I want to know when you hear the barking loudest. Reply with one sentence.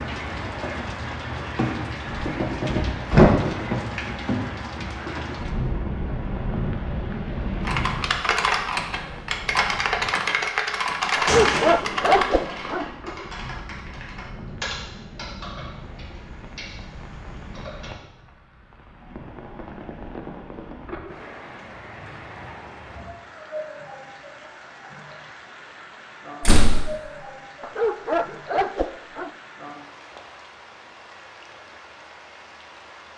The loudest moment of the barking is at 12 seconds.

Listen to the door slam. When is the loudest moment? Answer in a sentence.
The volume of the door slam peaks at 3 seconds.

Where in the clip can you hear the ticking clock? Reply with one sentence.
The ticking clock can't be heard in this clip.